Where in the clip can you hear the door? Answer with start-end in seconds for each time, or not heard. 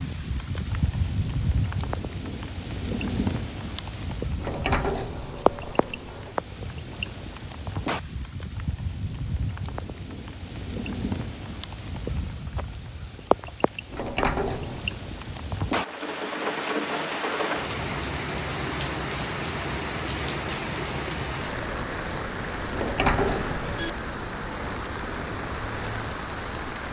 4.4-6.3, 13.9-14.8, 22.7-23.9.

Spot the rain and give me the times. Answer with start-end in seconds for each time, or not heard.
0.0-26.8.